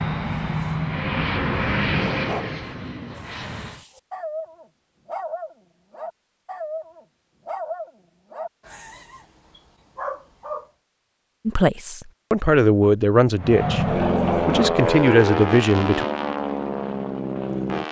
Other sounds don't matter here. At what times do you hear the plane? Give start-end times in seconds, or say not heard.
0.0-3.9, 13.3-17.8.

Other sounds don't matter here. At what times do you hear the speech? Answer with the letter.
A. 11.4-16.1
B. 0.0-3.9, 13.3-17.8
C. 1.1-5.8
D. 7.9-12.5
A.